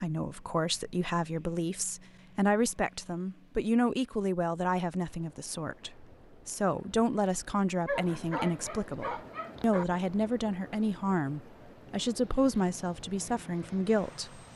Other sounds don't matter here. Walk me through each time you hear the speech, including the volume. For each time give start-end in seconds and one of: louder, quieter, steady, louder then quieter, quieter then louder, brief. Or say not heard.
0.0-14.4 steady.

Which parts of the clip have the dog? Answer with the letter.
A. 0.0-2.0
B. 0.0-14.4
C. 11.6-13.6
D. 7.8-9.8
D.